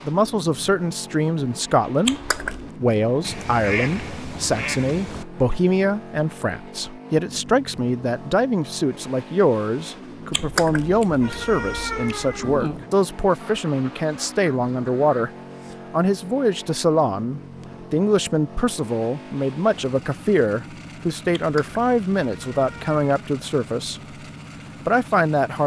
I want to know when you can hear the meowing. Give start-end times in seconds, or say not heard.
2.0-2.6, 10.3-12.8, 21.4-23.0.